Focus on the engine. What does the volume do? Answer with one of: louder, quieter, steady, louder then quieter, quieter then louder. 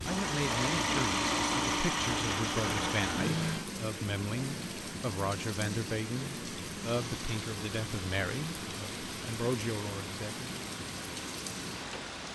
quieter.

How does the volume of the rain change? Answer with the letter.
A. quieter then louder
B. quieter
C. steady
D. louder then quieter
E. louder
C.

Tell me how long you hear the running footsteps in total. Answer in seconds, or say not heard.
not heard.